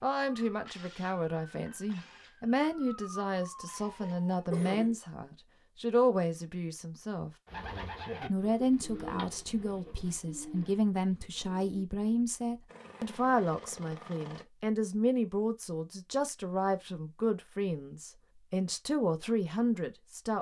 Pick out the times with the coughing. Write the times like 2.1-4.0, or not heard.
4.0-5.0.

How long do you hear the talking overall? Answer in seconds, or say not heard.
19 s.